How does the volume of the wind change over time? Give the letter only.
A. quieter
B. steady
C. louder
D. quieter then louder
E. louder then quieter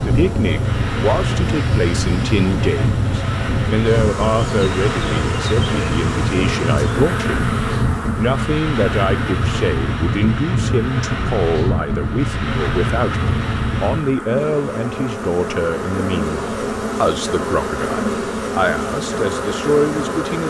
B.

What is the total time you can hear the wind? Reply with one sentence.
The wind can be heard for 14 seconds in total.